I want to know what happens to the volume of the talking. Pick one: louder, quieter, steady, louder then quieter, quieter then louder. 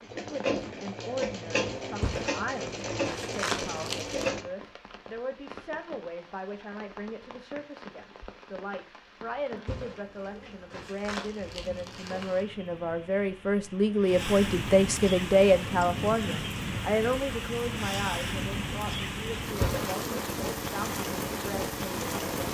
louder then quieter.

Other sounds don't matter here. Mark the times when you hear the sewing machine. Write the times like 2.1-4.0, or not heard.
0.0-4.5.